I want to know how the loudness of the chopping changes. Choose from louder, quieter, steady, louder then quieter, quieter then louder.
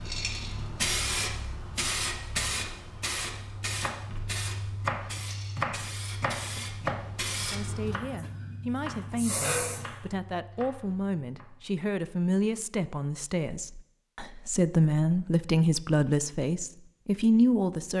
quieter.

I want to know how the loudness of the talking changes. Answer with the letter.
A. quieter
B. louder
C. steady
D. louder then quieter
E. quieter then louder
B.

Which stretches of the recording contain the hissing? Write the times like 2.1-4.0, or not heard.
0.0-9.8.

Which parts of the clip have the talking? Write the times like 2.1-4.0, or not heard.
7.4-17.9.